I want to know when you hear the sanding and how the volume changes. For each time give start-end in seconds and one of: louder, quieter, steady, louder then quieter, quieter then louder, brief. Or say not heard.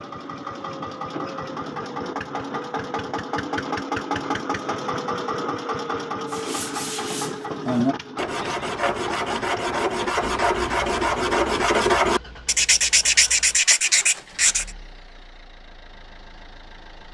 6.2-14.7 louder.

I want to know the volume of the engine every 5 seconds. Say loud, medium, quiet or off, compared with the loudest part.
loud, loud, quiet, quiet.